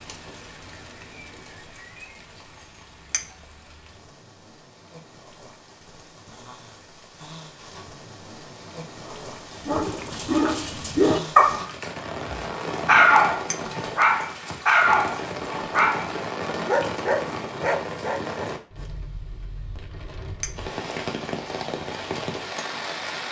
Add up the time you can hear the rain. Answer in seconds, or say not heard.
23 s.